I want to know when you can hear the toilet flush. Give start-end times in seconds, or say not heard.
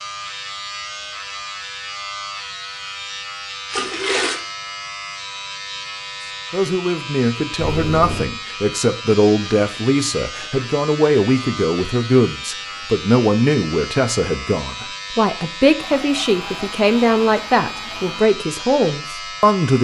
3.7-4.4, 7.5-8.3, 15.8-18.2.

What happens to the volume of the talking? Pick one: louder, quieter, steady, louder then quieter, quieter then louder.
steady.